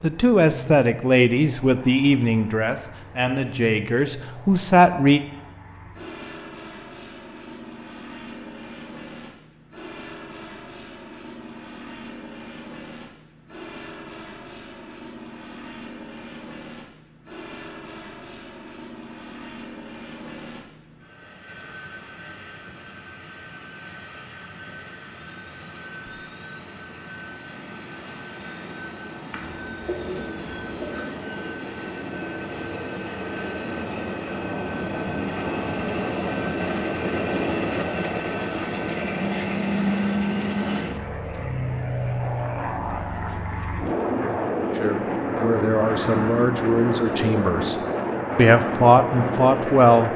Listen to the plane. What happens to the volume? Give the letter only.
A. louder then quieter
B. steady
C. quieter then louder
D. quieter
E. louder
E.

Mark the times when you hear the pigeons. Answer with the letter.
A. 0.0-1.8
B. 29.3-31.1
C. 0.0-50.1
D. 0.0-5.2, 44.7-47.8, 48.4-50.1
B.